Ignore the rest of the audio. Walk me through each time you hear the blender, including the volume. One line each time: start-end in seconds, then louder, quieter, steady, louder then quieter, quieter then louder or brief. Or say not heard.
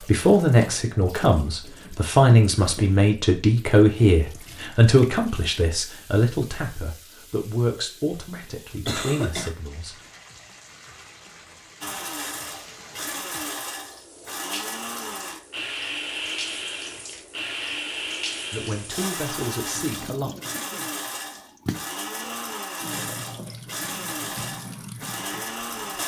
11.8-26.0 steady.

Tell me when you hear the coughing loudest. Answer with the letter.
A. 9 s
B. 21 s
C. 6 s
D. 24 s
A.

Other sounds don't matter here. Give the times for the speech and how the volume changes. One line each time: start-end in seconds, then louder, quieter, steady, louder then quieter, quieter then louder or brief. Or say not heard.
0.0-10.1 quieter
18.5-20.3 brief.